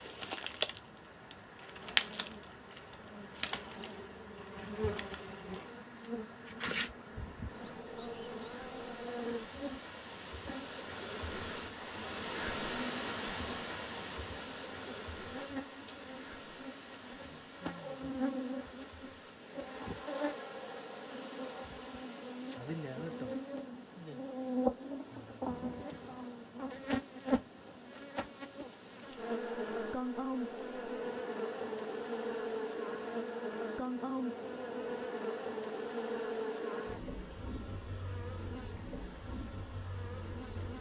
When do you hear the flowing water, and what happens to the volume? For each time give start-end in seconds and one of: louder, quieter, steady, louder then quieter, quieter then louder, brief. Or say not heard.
0.0-40.7 louder then quieter.